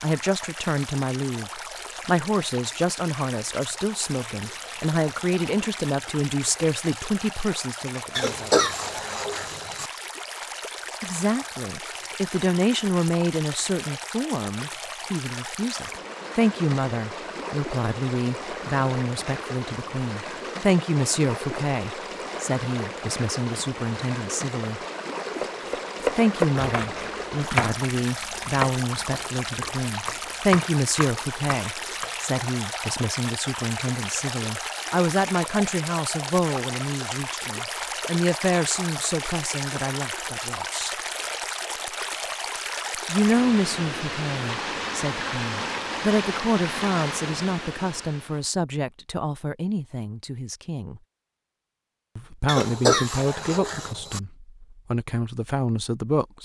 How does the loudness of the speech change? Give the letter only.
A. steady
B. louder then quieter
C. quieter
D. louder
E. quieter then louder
A.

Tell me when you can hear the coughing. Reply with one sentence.
You can hear the coughing from 8.2 to 9.9 s and from 52.5 to 54.2 s.